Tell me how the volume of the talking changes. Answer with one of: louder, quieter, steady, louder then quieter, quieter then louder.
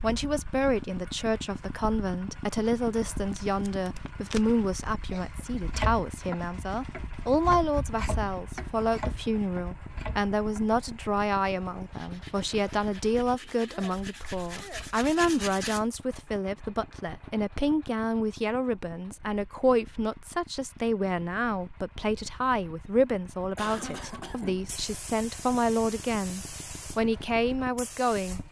steady.